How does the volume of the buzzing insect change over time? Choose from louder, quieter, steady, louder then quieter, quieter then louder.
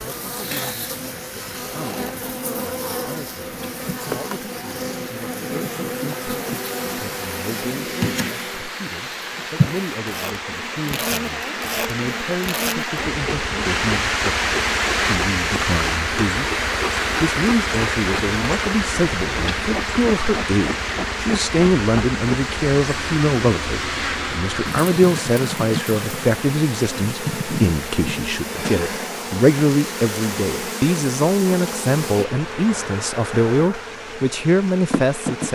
steady.